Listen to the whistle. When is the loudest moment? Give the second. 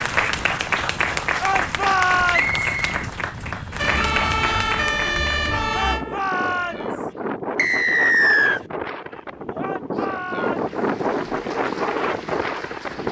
8 s.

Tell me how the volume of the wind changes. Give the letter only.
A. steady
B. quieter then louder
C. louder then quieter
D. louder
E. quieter
D.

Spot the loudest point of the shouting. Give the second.
2 s.